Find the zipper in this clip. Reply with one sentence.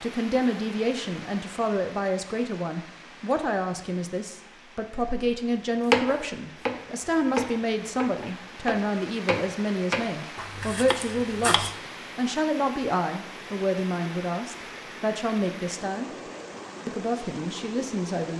You can't hear the zipper here.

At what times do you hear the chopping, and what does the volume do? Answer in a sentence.
You can hear the chopping from 5.9 to 11.8 s, getting quieter.